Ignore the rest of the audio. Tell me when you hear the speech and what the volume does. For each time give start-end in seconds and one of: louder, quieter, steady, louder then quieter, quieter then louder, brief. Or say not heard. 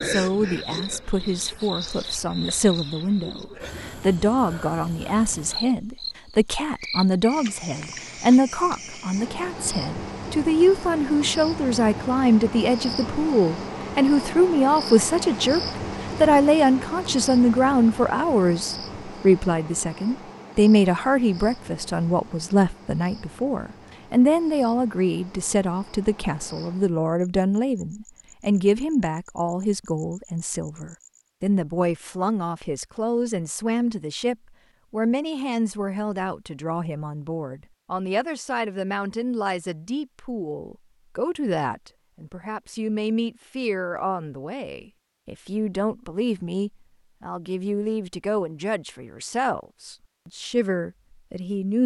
0.0-15.6 louder
16.2-51.8 quieter.